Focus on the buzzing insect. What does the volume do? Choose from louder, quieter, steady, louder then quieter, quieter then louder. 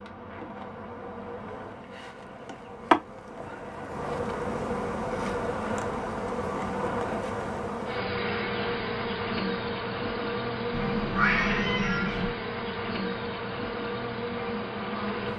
steady.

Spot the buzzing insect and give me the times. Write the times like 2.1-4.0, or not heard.
0.0-15.3.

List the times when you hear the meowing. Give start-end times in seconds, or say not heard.
10.7-12.3.